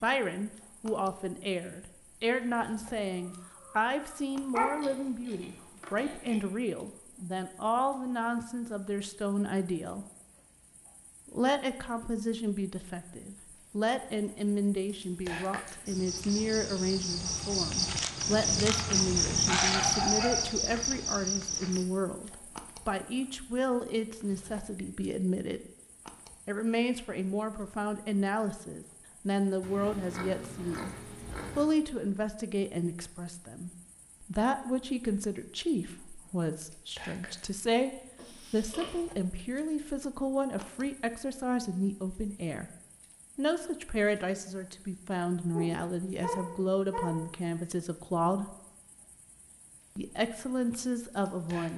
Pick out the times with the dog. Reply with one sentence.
You can hear the dog from 3.6 to 4.7 s, from 18.6 to 20.4 s and from 45.5 to 47.2 s.